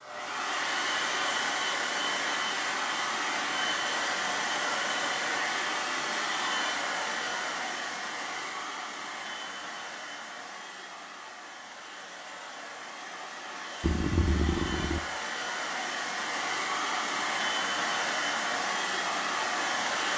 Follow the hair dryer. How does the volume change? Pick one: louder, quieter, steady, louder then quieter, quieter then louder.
quieter then louder.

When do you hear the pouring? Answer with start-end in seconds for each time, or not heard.
13.8-15.0.